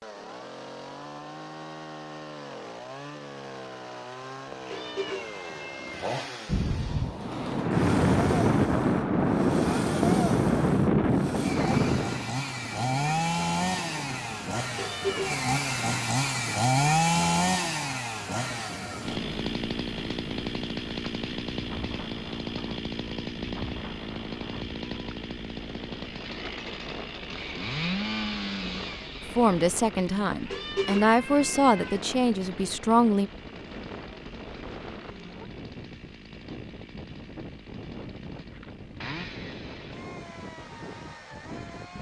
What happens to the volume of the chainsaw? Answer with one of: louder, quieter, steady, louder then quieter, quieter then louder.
louder then quieter.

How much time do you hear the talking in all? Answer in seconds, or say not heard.
4 s.